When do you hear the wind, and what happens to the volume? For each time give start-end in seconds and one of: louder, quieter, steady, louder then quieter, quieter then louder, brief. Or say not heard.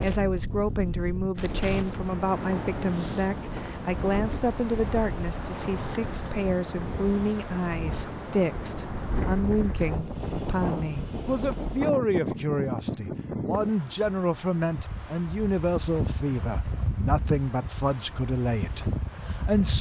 0.0-19.7 steady.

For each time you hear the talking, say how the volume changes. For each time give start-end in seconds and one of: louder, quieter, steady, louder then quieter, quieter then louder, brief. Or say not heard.
0.0-19.7 steady.